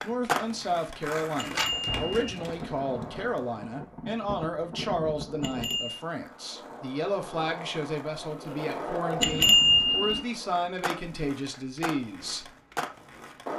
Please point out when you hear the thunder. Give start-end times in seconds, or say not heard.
1.6-5.8.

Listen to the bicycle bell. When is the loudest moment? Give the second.
10 s.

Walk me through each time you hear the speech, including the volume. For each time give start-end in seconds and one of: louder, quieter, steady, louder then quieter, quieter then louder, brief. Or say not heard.
0.0-12.5 steady.